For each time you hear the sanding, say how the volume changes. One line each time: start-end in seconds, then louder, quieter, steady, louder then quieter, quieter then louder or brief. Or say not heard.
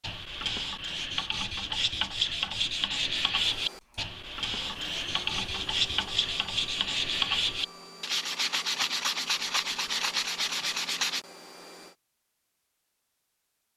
0.0-11.2 steady.